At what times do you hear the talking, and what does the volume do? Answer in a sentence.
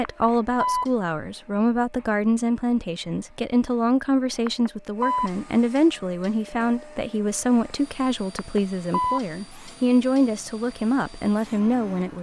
You can hear the talking from 0.0 to 12.1 s, at a steady volume.